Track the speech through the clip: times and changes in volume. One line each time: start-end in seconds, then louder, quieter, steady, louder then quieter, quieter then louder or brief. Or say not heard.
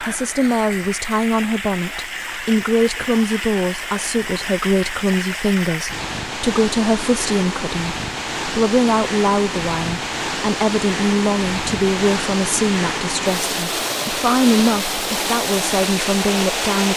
0.0-16.9 steady.